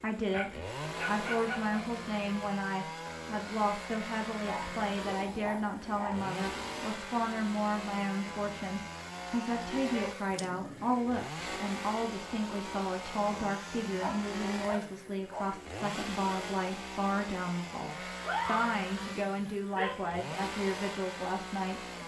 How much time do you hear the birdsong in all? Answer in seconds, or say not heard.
not heard.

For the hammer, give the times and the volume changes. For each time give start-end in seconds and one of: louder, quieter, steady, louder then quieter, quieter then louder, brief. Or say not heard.
not heard.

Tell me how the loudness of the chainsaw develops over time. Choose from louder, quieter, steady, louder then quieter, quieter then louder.
steady.